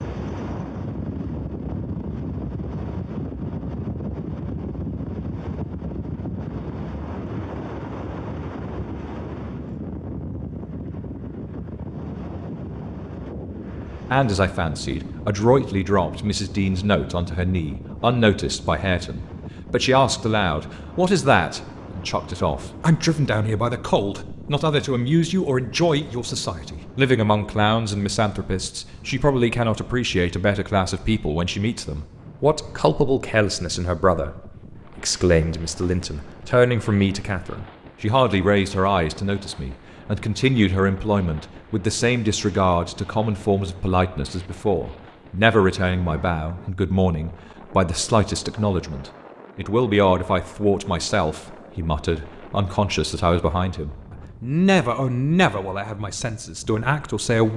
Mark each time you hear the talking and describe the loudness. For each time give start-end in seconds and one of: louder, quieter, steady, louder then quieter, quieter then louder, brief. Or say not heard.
14.1-57.5 steady.